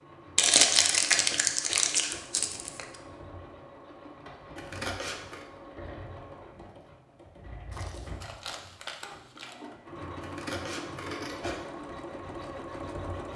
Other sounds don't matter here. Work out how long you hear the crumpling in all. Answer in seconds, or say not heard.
4 s.